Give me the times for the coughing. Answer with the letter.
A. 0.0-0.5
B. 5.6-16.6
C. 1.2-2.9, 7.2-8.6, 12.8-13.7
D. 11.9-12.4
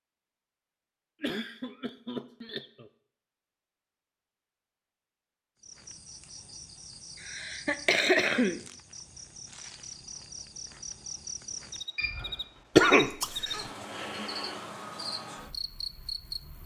C.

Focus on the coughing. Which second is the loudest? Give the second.
13 s.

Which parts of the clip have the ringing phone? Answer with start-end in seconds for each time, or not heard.
11.9-12.4.